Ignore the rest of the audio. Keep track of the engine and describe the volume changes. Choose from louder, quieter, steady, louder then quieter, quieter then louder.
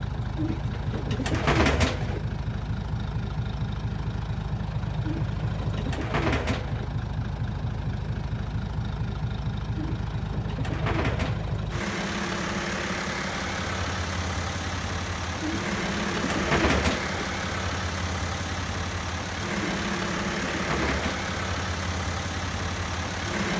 steady.